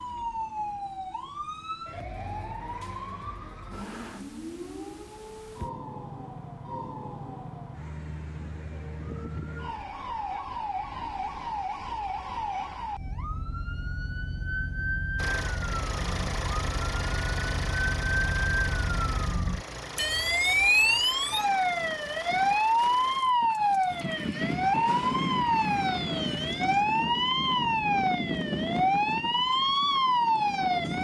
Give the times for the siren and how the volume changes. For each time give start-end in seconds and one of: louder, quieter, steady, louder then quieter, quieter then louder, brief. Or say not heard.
0.0-30.9 louder.